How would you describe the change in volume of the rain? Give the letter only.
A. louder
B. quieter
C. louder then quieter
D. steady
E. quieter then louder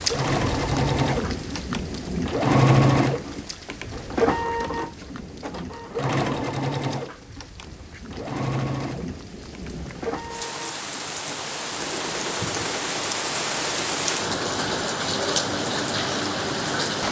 E.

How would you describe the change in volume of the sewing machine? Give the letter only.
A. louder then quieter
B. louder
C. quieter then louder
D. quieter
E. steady
D.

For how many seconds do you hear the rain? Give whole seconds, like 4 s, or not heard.
17 s.